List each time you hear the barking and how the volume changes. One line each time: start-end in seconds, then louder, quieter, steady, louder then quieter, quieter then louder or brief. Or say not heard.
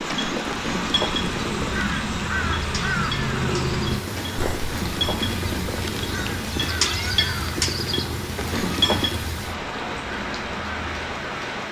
not heard.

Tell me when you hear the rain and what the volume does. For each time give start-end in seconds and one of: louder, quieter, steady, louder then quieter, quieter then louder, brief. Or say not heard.
0.0-11.6 steady.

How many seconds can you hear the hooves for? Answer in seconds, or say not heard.
9 s.